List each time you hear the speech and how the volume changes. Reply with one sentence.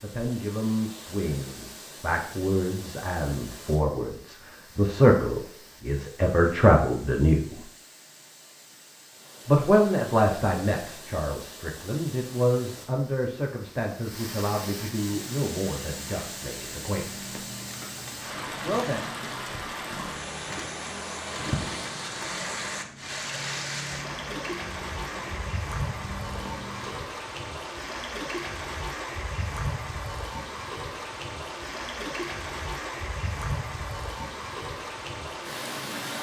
The speech can be heard from 0.0 to 7.6 s, getting louder; from 9.4 to 17.2 s, getting quieter; and briefly from 18.6 to 19.1 s.